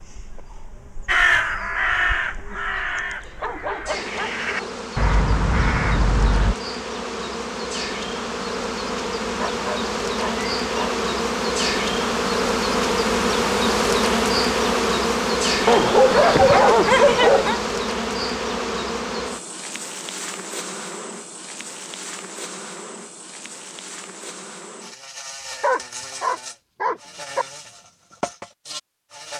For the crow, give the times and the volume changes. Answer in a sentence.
The crow can be heard from 1.1 to 6.5 s, getting quieter then louder.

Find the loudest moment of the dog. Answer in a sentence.
The volume of the dog peaks at 17 seconds.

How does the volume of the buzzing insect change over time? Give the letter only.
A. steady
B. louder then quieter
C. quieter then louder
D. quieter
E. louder
B.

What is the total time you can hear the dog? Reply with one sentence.
The dog can be heard for 7 seconds in total.